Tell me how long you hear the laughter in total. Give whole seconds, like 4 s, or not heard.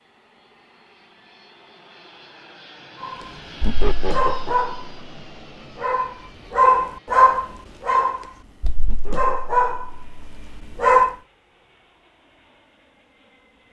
2 s.